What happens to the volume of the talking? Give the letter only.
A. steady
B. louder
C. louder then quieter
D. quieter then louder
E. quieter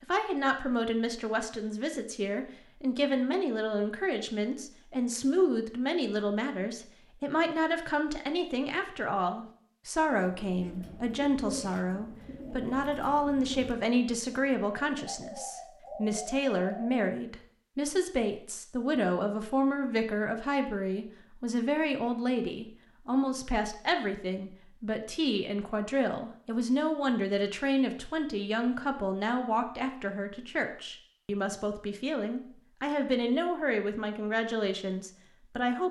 A.